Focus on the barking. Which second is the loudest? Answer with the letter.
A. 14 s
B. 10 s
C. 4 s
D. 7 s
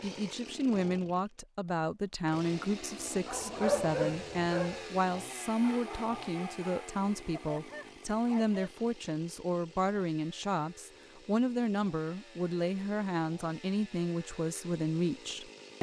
C.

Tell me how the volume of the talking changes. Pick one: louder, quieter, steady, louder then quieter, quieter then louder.
steady.